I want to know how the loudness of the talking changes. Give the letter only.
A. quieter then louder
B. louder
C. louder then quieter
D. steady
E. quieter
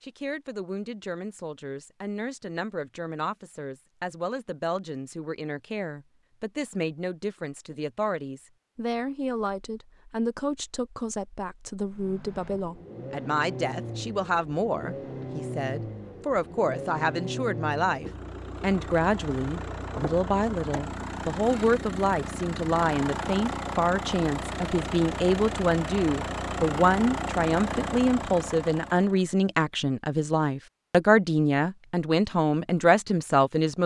B.